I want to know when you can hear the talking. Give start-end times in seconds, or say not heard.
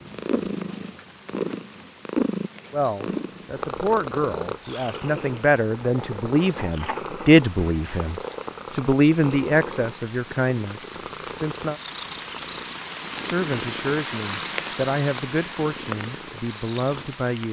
2.7-11.8, 13.2-17.4.